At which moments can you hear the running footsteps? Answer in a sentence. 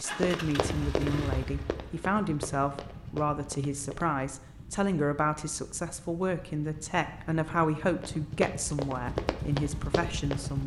The running footsteps can be heard from 0.0 to 4.0 s and from 8.0 to 10.5 s.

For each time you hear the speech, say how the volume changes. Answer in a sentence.
You can hear the speech from 0.0 to 10.6 s, at a steady volume.